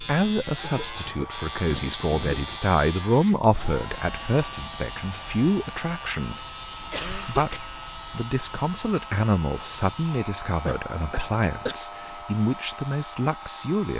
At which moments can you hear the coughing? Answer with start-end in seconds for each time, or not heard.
0.6-2.6, 6.9-7.8, 10.7-11.8.